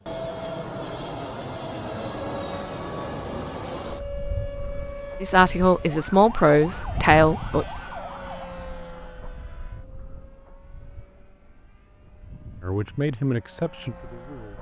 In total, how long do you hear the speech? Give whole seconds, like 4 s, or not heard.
4 s.